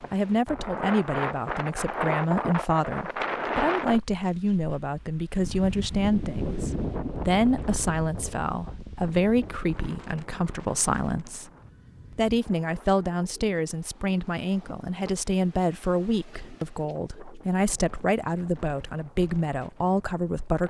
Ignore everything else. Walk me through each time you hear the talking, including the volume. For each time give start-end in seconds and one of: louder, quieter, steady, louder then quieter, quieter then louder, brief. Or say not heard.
0.1-11.4 steady
12.2-20.6 steady.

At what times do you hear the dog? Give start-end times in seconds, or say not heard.
not heard.